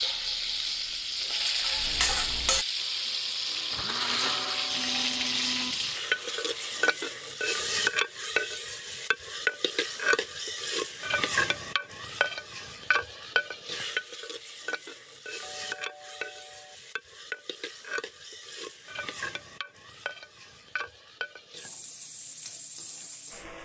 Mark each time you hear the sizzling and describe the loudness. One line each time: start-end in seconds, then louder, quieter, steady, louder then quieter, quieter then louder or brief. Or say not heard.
0.0-23.6 quieter.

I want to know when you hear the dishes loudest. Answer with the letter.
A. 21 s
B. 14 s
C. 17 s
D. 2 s
D.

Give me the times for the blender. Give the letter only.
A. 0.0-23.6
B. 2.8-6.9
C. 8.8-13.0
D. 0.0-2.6
B.